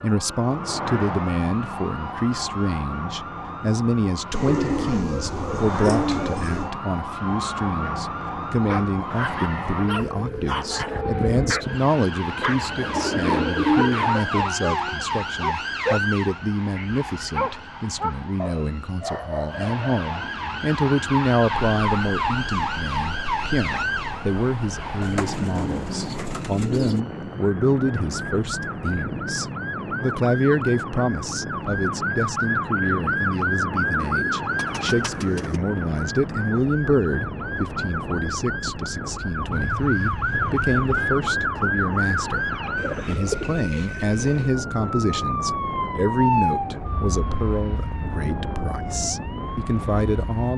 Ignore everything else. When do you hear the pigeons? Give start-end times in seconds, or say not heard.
4.3-6.7, 12.4-14.5, 25.0-27.0, 34.0-35.6, 42.8-44.5.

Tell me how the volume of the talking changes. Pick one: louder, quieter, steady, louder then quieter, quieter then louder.
steady.